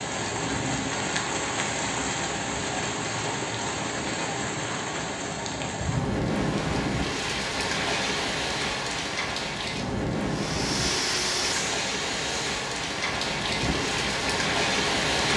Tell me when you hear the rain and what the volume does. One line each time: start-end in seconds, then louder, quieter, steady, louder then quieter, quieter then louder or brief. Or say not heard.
0.0-15.3 steady.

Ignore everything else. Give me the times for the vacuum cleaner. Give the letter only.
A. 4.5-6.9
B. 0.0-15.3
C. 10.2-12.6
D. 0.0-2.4
C.